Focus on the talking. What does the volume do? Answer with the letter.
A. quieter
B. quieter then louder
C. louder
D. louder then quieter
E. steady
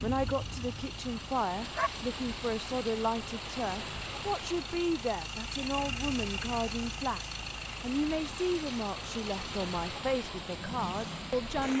E.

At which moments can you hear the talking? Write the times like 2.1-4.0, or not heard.
0.0-7.2, 7.8-11.7.